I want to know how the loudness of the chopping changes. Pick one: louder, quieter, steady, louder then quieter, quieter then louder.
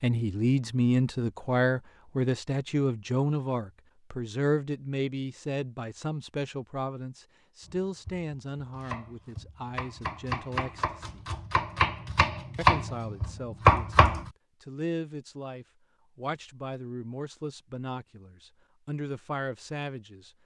louder.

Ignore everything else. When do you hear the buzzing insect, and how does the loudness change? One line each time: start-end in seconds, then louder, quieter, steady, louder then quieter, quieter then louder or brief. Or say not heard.
not heard.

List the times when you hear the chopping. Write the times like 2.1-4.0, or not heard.
7.7-14.3.